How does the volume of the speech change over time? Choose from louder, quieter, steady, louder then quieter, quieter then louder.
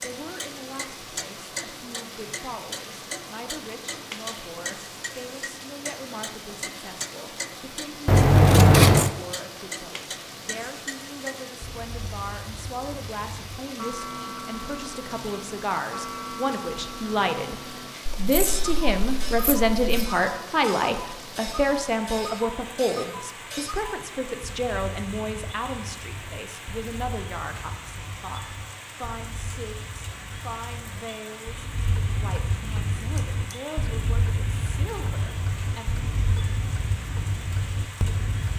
louder then quieter.